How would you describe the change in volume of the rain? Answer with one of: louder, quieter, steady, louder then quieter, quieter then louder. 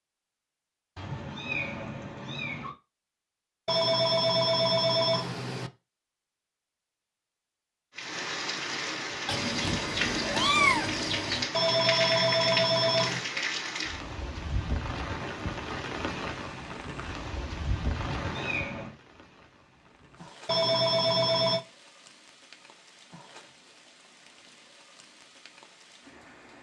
quieter.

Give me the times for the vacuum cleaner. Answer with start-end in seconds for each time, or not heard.
not heard.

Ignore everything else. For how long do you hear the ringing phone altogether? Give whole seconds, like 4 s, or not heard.
5 s.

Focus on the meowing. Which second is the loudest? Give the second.
11 s.